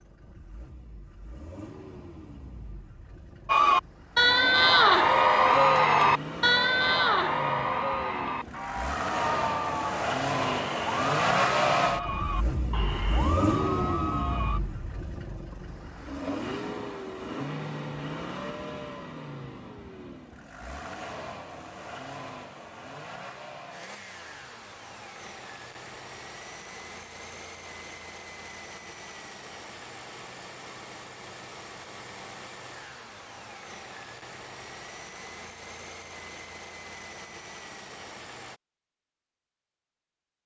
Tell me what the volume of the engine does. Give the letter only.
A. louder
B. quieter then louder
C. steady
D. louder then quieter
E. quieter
D.